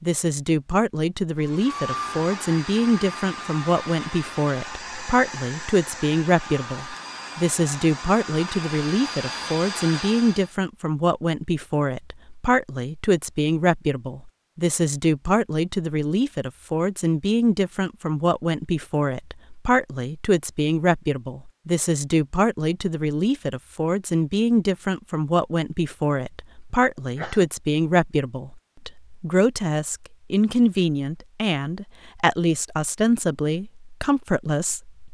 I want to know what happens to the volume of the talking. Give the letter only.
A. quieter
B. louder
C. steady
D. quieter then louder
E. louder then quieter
C.